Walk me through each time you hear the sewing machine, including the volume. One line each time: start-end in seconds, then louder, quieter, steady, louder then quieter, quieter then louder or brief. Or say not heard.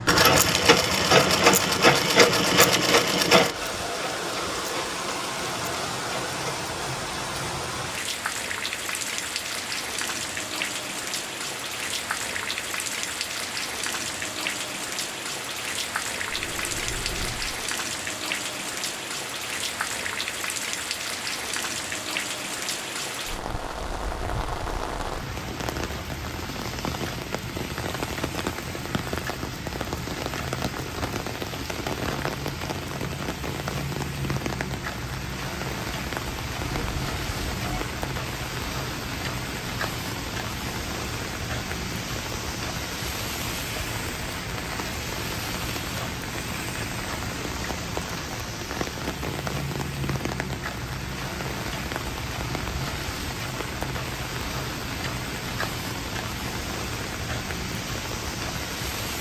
0.0-6.7 quieter.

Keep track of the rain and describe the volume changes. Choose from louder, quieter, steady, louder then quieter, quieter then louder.
steady.